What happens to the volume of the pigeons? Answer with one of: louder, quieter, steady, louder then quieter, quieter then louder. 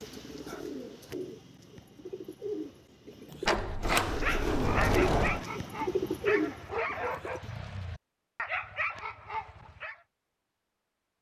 louder.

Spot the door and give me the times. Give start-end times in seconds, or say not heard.
3.5-5.5.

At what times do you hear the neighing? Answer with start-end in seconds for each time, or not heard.
not heard.